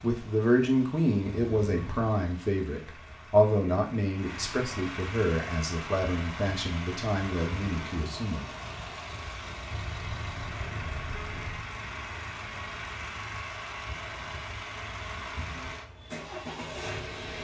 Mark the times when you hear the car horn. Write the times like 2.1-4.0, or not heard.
1.2-2.1, 9.7-11.6.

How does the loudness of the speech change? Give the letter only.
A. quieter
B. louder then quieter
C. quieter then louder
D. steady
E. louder
A.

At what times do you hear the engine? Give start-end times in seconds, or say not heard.
0.0-17.3.